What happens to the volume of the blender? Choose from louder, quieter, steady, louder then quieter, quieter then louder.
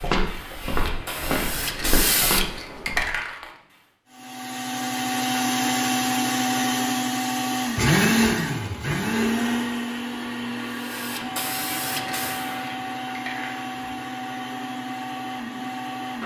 quieter.